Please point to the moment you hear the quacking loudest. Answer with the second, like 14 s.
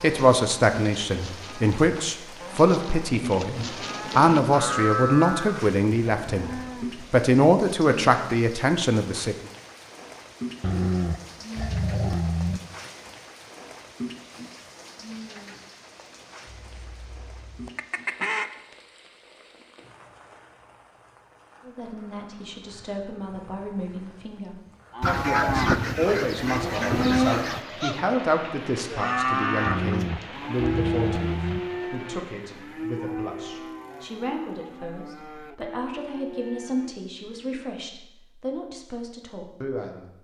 26 s.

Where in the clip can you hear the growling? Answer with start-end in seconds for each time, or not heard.
10.6-12.6, 29.6-31.6.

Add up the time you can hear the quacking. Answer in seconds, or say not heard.
5 s.